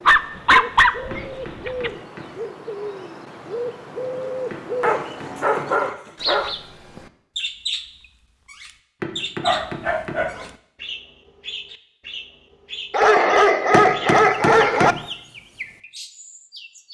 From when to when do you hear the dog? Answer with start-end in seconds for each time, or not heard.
0.1-1.9, 4.8-6.5, 9.4-10.4, 12.9-14.9.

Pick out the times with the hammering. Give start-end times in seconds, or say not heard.
1.1-2.4, 4.5-5.8, 9.0-10.3, 13.7-15.1.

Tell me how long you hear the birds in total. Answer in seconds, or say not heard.
17 s.